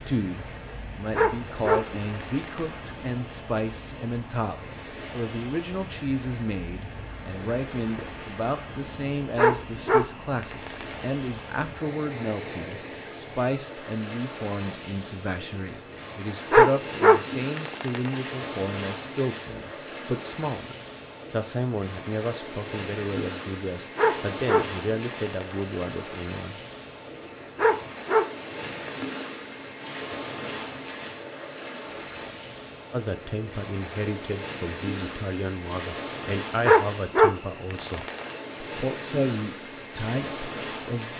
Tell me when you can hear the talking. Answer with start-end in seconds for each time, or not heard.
0.0-26.6, 32.9-41.1.